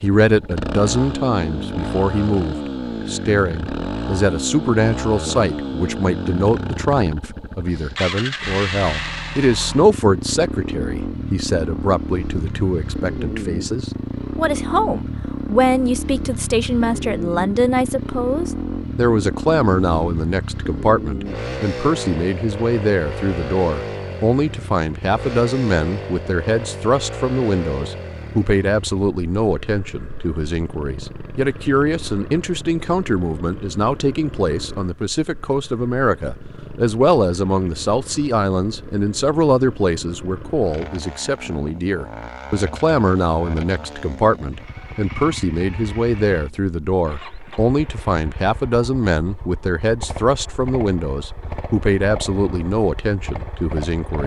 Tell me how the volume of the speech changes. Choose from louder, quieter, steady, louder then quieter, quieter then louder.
steady.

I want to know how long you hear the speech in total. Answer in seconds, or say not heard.
54 s.